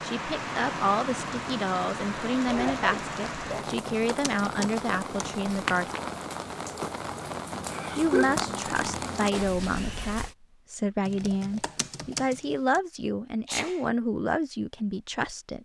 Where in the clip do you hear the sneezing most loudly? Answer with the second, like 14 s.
8 s.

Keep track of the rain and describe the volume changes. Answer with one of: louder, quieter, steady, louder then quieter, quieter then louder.
steady.